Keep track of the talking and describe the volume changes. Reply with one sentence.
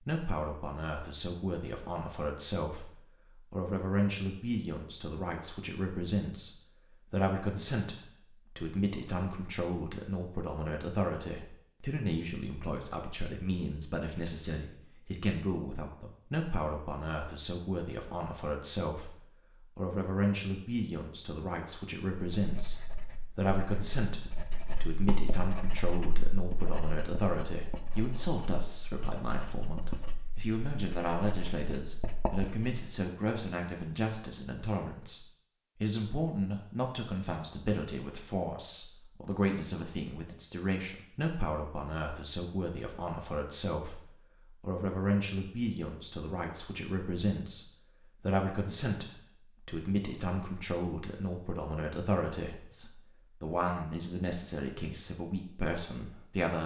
The volume of the talking stays about the same.